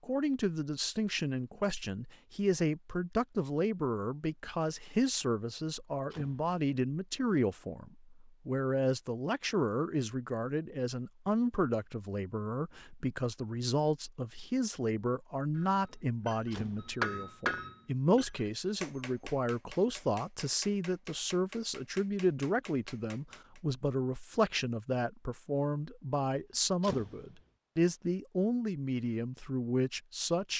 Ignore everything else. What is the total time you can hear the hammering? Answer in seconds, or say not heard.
8 s.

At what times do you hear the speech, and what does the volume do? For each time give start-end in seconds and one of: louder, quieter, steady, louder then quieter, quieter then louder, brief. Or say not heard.
0.0-30.5 steady.